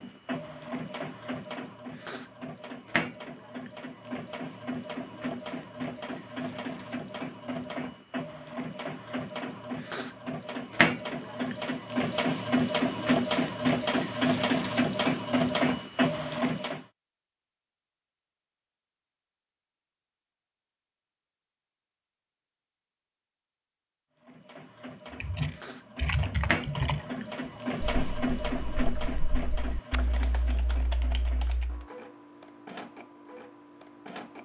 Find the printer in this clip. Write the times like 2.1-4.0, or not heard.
0.0-16.9, 24.2-34.3.